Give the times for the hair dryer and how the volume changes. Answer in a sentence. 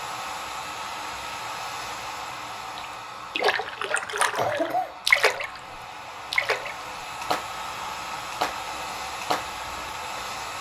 The hair dryer can be heard from 0.0 to 10.5 s, getting quieter then louder.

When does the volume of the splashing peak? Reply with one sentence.
The volume of the splashing peaks at 5 seconds.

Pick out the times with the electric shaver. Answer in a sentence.
The electric shaver can't be heard in this clip.